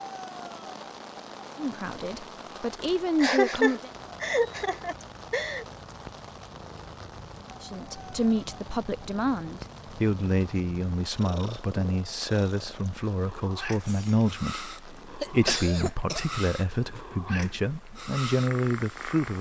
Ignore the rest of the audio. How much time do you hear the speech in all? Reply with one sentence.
The speech can be heard for 14 seconds in total.